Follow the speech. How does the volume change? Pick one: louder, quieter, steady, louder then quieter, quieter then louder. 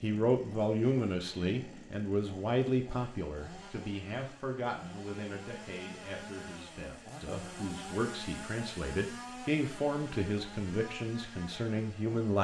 quieter then louder.